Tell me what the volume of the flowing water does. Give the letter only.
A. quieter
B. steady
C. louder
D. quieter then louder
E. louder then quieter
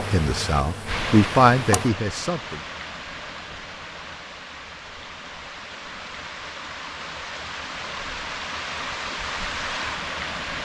D.